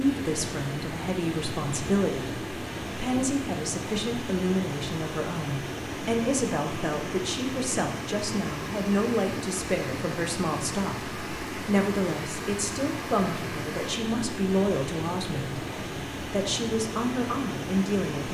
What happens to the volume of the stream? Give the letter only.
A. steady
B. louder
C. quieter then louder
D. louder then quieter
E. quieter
A.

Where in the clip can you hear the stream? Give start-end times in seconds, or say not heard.
0.0-18.2.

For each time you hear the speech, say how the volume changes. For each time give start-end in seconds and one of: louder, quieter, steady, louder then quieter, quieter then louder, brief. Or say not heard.
0.0-18.2 steady.